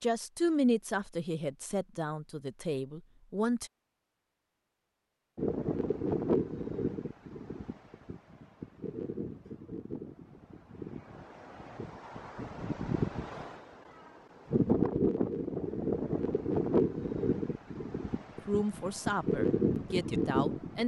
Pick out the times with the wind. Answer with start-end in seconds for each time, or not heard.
5.3-20.8.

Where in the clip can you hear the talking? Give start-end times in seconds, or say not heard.
0.0-3.7, 18.4-20.8.